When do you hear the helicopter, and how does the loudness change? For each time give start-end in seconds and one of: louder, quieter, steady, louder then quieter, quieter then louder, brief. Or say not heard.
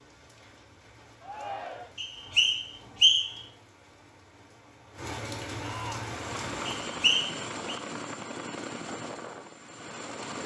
6.1-10.4 quieter.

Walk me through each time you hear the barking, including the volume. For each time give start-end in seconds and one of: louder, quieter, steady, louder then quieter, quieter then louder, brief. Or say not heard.
not heard.